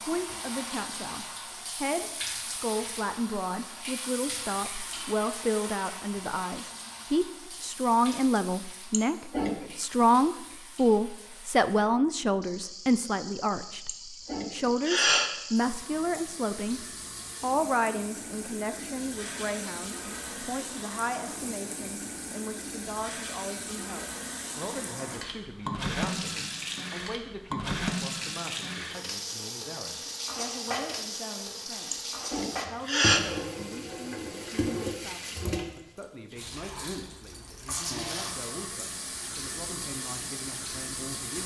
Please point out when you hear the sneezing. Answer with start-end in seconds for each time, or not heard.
8.9-9.7, 13.8-15.3, 31.9-33.2.